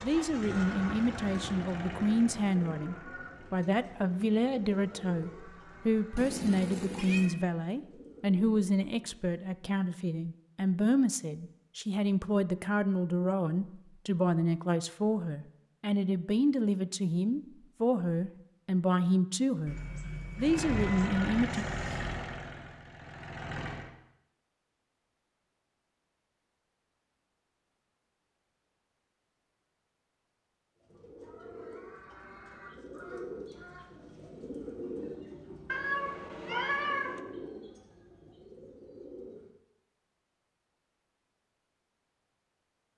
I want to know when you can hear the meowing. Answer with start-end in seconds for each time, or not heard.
6.2-7.3, 19.6-22.1, 35.6-37.2.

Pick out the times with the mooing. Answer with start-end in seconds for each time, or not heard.
not heard.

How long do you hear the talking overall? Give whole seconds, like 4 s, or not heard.
21 s.